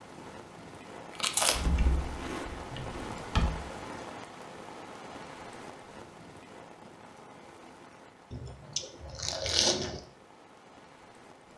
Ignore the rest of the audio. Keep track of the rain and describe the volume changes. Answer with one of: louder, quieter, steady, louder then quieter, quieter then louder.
quieter.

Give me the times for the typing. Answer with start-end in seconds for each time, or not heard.
1.5-3.5.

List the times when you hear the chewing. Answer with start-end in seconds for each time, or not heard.
1.1-3.1, 8.3-10.0.